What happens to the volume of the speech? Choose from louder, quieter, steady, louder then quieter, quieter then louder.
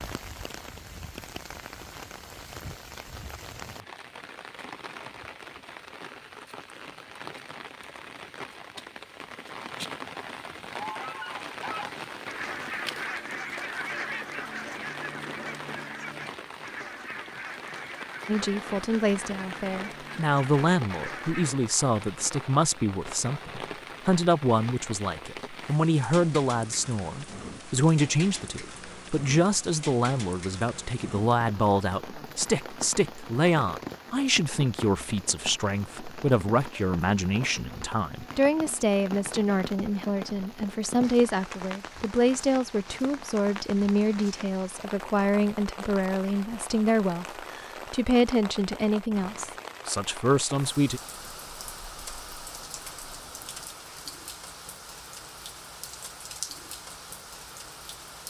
steady.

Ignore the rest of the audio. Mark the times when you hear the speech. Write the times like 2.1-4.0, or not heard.
18.2-51.0.